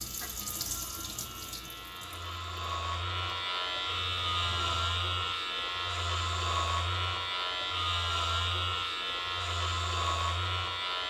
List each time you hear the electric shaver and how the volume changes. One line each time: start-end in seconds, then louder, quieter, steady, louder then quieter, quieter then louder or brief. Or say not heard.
0.0-11.0 louder.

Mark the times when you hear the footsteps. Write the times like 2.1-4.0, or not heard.
not heard.